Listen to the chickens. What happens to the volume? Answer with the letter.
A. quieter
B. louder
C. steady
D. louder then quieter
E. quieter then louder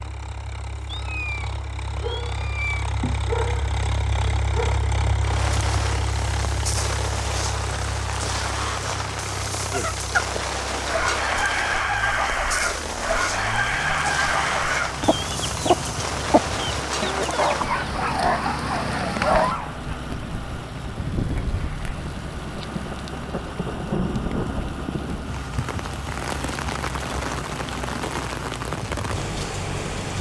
C.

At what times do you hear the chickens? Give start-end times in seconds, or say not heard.
9.6-17.9.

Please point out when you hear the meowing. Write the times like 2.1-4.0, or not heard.
0.8-2.9.